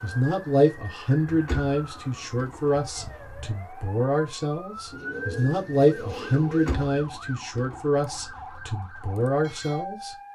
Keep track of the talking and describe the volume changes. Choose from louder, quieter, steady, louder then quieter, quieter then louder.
steady.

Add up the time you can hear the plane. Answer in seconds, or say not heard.
not heard.